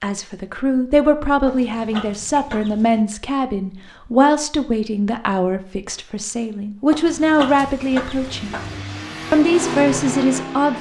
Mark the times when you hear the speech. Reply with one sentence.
You can hear the speech from 0.0 to 8.6 s and from 9.3 to 10.7 s.